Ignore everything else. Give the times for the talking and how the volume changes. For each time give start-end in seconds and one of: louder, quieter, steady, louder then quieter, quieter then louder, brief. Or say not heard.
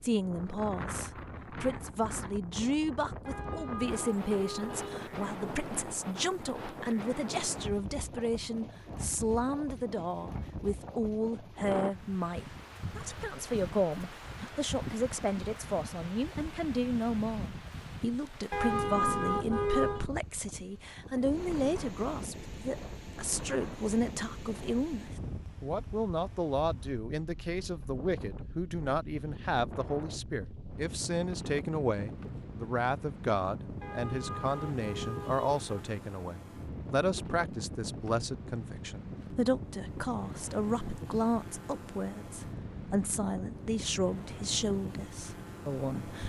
0.0-46.2 steady.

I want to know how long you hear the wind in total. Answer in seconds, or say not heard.
46 s.